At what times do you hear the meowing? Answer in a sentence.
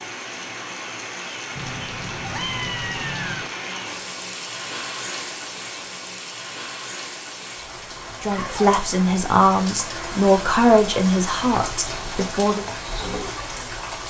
You can hear the meowing from 1.6 to 3.5 s.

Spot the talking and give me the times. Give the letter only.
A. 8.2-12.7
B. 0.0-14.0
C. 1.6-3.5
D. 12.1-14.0
A.